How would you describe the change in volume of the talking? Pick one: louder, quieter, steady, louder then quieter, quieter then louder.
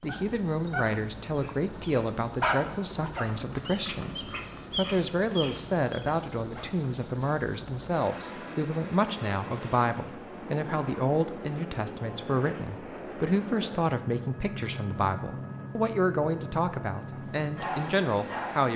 steady.